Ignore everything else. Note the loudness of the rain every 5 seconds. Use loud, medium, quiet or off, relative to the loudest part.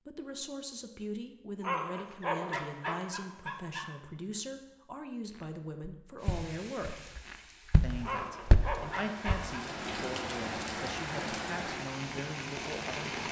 off, medium, loud.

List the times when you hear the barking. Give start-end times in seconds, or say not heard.
1.6-4.0, 8.0-9.7.